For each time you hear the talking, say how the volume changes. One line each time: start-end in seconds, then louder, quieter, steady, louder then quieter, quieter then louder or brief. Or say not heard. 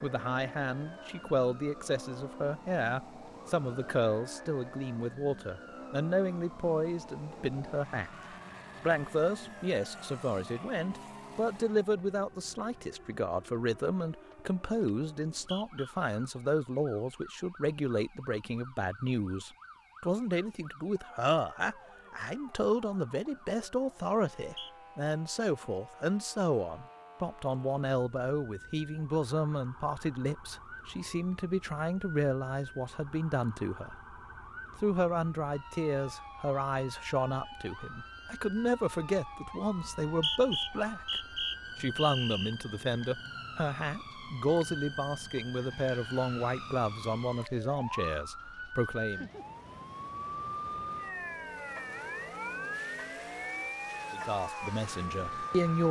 0.0-8.1 steady
8.8-34.1 steady
34.8-49.3 steady
54.1-55.8 brief.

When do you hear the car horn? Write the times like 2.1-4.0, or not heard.
not heard.